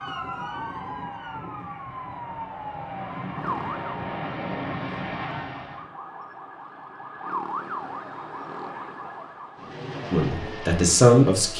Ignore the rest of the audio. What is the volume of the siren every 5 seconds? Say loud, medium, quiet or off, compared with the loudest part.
loud, loud, off.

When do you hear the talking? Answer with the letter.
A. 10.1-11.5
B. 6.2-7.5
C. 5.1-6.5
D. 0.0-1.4
A.